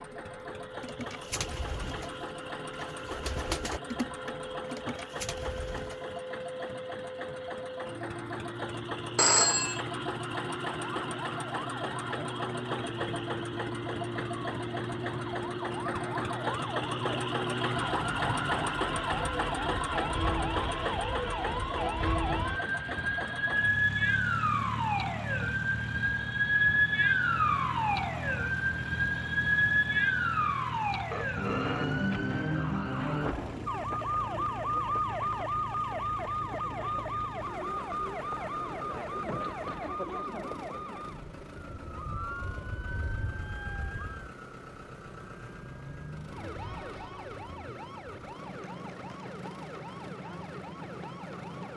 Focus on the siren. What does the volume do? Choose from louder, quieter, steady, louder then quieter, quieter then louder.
louder then quieter.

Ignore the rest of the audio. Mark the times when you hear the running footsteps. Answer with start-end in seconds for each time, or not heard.
not heard.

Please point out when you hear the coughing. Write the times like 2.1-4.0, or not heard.
not heard.